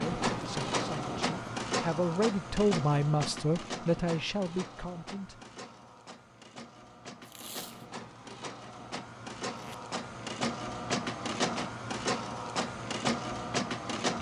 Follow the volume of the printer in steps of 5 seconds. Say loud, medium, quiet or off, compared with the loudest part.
loud, medium, loud.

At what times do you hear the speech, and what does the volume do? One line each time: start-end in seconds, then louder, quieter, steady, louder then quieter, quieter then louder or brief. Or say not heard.
0.0-5.4 louder then quieter.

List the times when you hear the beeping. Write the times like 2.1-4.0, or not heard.
not heard.